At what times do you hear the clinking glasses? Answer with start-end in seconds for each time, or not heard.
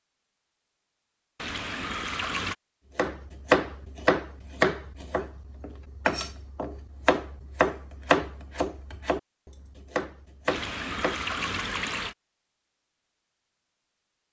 not heard.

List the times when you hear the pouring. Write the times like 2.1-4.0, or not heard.
1.4-2.5, 10.4-12.2.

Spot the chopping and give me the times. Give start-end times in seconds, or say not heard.
3.0-11.3.